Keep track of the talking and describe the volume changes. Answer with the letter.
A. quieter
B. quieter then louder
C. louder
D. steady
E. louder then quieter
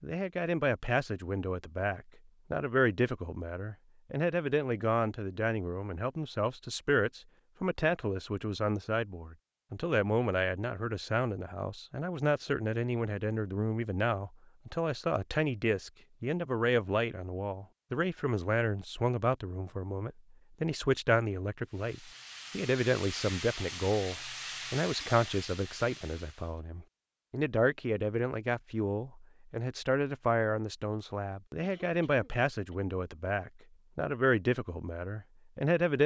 D.